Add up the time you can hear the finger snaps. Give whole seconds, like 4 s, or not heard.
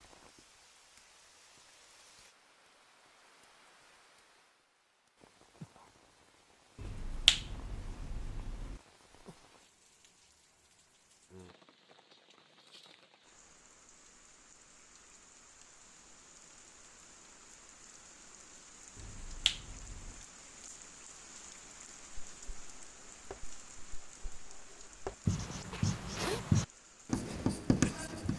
3 s.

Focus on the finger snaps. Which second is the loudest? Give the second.
7 s.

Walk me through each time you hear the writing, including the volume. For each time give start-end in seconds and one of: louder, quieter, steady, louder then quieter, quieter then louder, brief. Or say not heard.
22.3-28.3 quieter then louder.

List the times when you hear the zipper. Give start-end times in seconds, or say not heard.
25.7-26.4.